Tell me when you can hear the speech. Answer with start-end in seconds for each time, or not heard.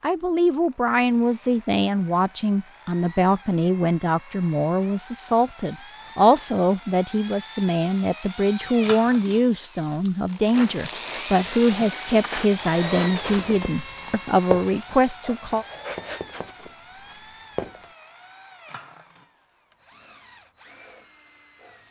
0.0-15.7.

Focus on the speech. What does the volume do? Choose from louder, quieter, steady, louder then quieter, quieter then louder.
steady.